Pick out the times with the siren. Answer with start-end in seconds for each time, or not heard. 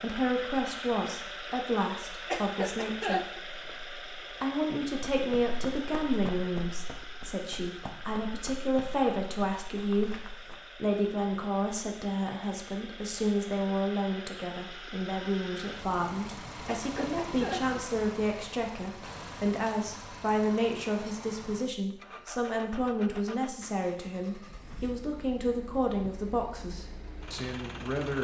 not heard.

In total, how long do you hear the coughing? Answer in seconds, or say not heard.
2 s.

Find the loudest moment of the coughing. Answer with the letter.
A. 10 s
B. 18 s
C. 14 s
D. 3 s
D.